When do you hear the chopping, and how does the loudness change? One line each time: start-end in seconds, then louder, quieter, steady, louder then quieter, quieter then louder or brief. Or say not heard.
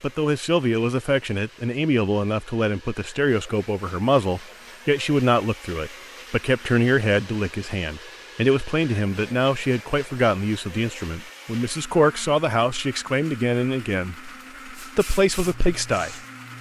not heard.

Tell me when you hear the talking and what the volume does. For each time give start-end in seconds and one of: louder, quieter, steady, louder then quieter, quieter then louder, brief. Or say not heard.
0.0-16.1 steady.